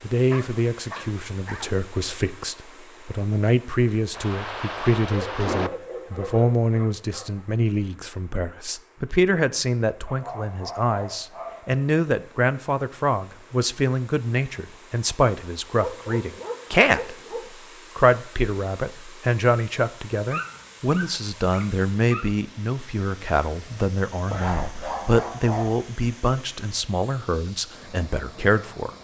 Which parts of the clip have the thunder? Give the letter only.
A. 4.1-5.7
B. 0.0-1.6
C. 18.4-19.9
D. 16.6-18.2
A.